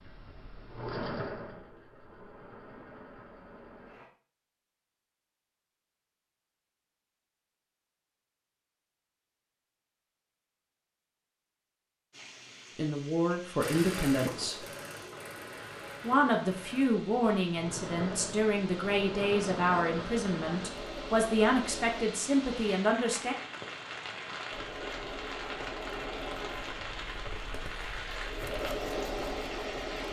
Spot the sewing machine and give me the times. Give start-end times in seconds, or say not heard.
0.0-4.1, 13.6-22.1, 24.5-30.0.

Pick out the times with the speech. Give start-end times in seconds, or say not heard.
12.8-14.7, 16.0-23.4.